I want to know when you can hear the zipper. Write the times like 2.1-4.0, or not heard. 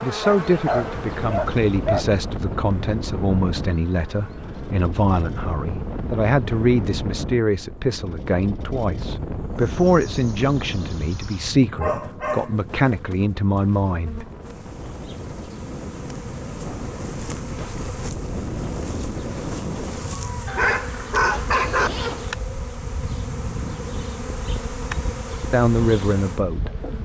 21.8-22.4.